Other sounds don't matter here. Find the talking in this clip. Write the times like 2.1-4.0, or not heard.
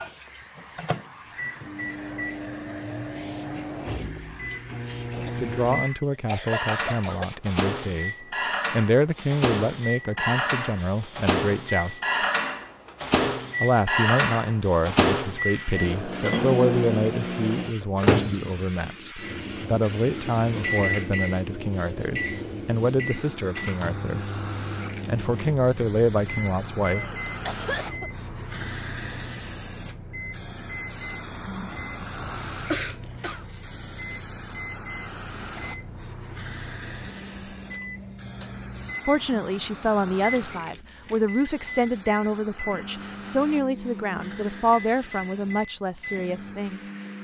5.4-12.2, 13.6-24.3, 25.1-27.1, 39.0-46.9.